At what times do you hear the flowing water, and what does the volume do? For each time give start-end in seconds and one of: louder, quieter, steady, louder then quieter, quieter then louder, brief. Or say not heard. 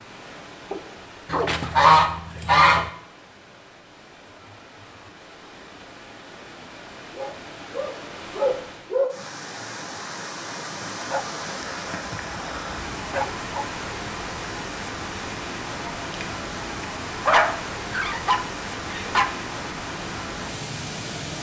0.0-21.3 louder.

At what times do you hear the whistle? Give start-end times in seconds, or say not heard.
not heard.